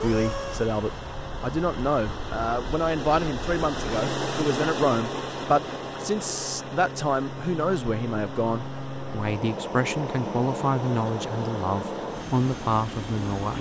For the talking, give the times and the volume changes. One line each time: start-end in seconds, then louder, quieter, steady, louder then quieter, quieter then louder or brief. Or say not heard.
0.0-13.5 steady.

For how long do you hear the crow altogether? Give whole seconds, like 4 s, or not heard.
not heard.